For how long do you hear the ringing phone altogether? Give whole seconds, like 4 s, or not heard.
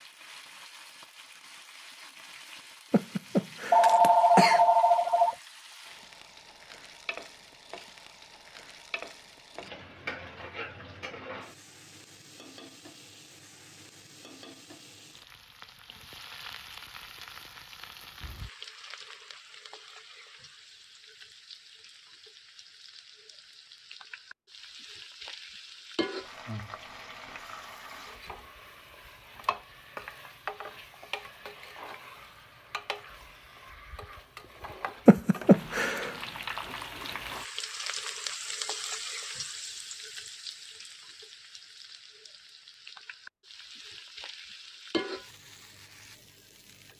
2 s.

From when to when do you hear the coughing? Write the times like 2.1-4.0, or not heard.
2.9-4.7, 35.0-36.1.